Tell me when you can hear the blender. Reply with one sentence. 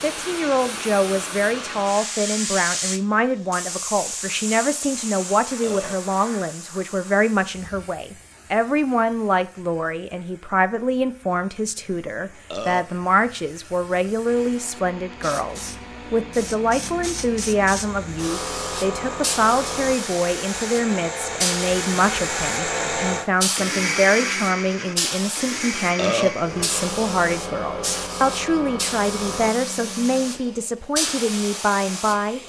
The blender can be heard from 14.2 to 32.4 s.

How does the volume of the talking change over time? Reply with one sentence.
The loudness of the talking stays about the same.